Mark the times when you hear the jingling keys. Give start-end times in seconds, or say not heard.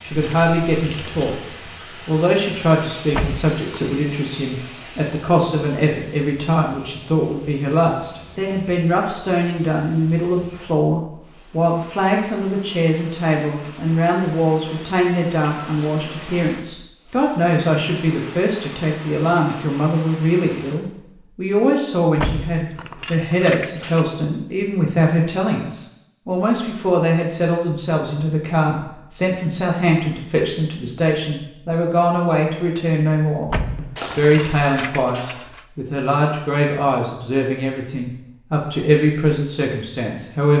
3.1-3.8, 22.1-24.1, 33.5-35.6.